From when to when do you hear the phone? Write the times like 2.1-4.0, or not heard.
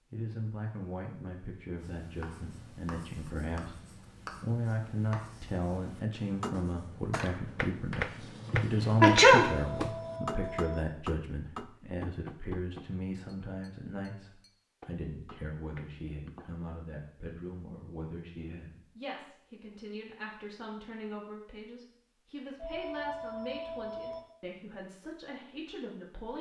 9.3-10.8, 22.6-24.2.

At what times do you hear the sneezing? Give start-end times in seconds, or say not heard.
8.5-9.9.